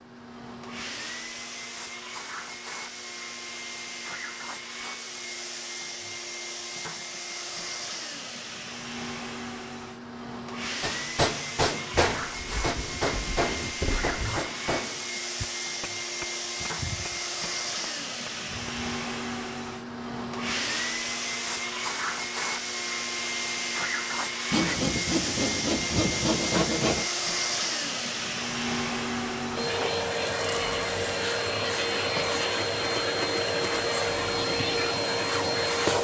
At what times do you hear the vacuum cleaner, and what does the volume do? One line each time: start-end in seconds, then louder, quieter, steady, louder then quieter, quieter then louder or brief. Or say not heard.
0.0-35.9 louder.